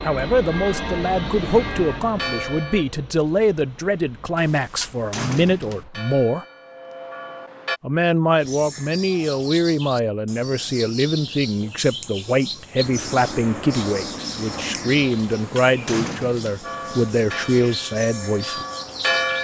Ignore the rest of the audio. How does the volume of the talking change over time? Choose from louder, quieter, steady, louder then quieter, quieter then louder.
steady.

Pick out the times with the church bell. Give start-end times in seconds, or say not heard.
0.0-2.9, 5.8-7.8, 16.6-19.3.